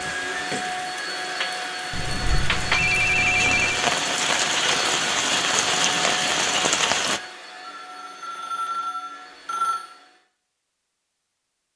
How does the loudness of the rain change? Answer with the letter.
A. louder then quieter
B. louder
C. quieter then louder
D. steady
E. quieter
B.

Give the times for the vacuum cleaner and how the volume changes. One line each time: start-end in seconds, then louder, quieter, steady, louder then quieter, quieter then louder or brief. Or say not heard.
0.0-10.2 quieter.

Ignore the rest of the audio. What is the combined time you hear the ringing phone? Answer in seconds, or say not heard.
4 s.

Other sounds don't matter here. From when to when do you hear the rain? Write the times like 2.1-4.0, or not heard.
0.0-7.2.